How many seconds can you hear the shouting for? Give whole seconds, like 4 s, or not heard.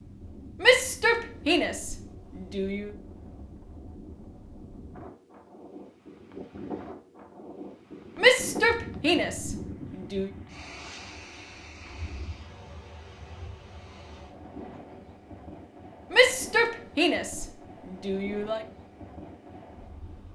7 s.